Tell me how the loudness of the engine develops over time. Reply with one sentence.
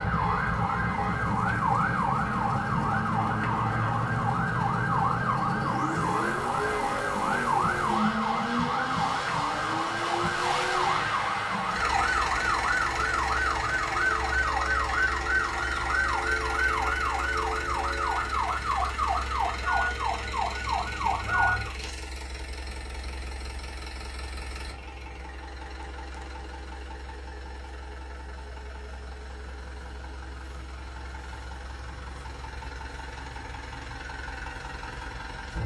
The loudness of the engine goes down.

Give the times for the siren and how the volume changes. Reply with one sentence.
The siren can be heard from 0.0 to 21.7 s, at a steady volume.